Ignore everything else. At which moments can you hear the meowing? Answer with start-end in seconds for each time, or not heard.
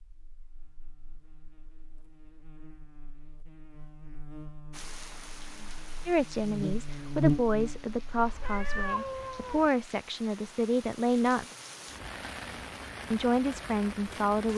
8.2-9.7.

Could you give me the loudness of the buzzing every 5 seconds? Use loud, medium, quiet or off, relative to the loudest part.
quiet, loud, off.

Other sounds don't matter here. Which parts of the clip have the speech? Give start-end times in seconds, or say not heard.
6.0-11.4, 13.1-14.5.